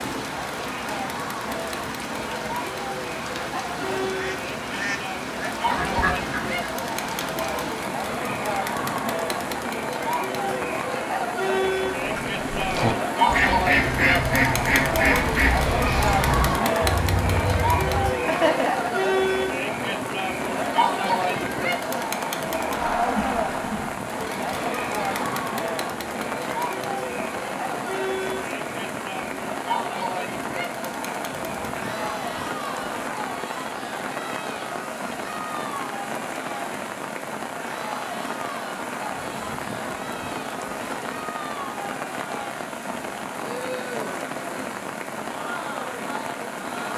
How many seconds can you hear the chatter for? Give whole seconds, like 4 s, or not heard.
47 s.